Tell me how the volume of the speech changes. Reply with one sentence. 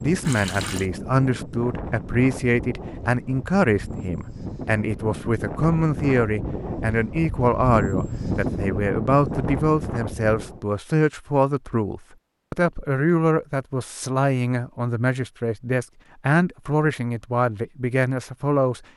The loudness of the speech stays about the same.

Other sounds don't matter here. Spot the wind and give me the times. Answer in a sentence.
You can hear the wind from 0.0 to 10.7 s.